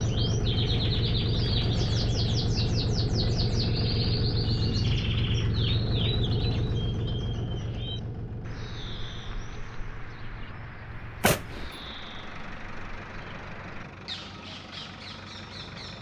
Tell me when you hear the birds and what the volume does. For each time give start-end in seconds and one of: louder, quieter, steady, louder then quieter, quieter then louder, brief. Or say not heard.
0.0-15.9 quieter.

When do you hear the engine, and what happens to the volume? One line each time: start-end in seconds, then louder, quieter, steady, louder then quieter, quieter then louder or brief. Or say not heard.
0.0-15.9 quieter.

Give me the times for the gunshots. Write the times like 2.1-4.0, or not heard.
11.2-11.9.